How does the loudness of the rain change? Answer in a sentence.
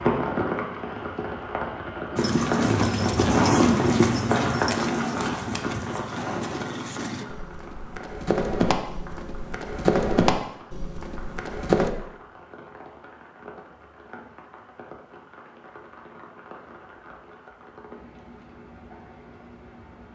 The loudness of the rain goes down.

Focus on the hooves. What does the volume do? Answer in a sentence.
The volume of the hooves goes down, then up.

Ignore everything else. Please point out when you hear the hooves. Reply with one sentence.
You can hear the hooves from 2.1 to 11.9 s.